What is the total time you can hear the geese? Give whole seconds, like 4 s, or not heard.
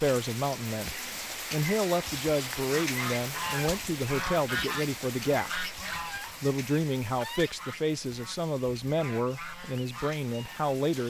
8 s.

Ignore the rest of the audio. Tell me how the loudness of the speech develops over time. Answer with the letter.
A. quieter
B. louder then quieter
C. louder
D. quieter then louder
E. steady
E.